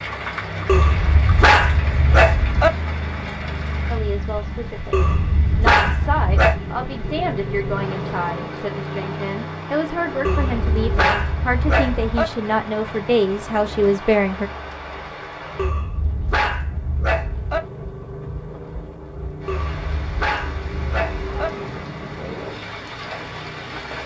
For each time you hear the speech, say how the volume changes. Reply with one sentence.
You can hear the speech from 3.9 to 14.5 s, getting louder.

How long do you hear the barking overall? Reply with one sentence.
The barking can be heard for 10 seconds in total.